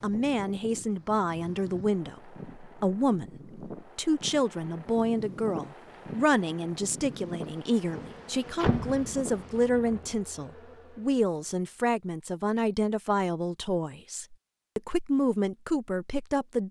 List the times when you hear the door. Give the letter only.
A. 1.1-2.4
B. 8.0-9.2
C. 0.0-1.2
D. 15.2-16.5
B.